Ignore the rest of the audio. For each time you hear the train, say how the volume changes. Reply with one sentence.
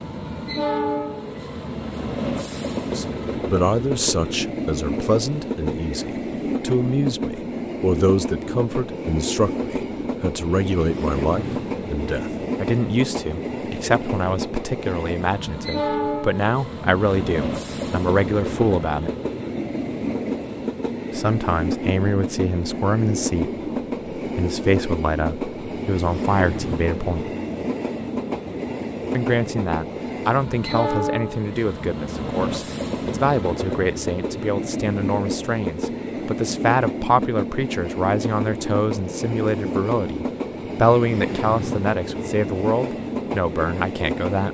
You can hear the train from 0.0 to 44.4 s, at a steady volume.